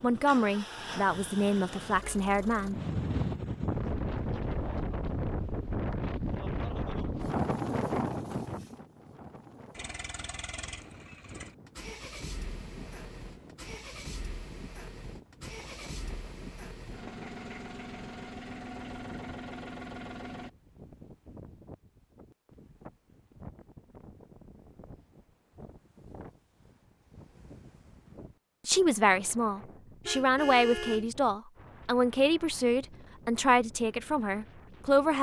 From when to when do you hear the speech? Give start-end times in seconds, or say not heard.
0.0-2.8, 28.6-35.1.